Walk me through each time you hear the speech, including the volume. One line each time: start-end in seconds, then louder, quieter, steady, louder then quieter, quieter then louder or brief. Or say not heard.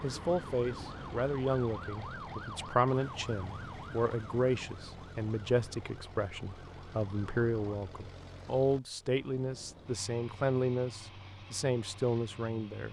0.0-12.8 steady.